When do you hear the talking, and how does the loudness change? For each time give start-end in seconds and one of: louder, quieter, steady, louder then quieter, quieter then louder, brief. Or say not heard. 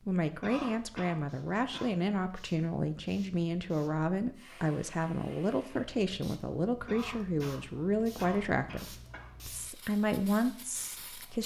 0.1-11.4 steady.